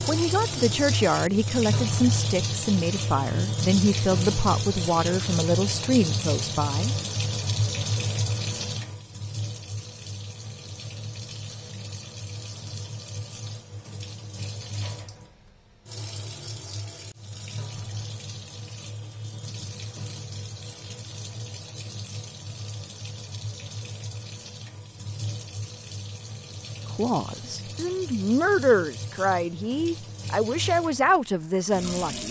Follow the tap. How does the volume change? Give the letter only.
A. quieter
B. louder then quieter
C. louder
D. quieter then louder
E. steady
A.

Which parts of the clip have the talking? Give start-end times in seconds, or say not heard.
0.1-7.0, 26.9-32.2.